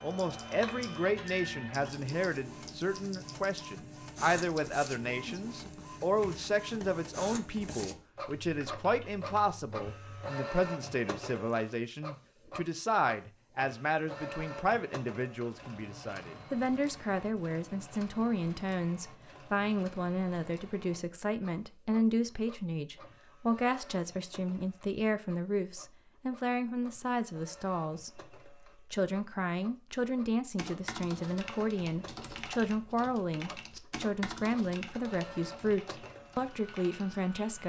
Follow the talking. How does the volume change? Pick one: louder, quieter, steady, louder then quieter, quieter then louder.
steady.